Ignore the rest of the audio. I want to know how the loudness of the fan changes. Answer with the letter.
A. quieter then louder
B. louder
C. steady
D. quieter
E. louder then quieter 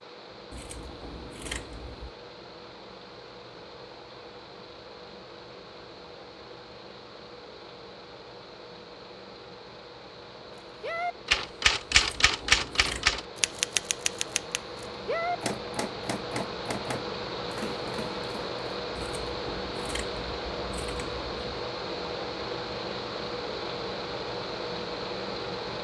B.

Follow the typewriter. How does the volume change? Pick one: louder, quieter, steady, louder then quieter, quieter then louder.
quieter.